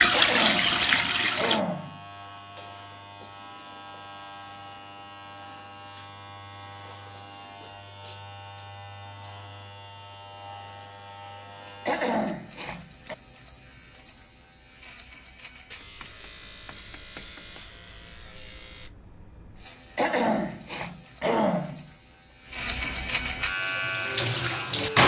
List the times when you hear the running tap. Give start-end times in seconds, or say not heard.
0.0-1.6, 23.5-25.0.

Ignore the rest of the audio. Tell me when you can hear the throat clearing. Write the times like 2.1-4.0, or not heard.
0.1-2.0, 11.8-13.2, 19.9-21.9.